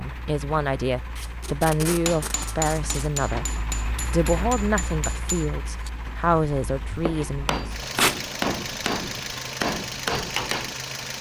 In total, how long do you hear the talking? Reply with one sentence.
You can hear the talking for 7 seconds altogether.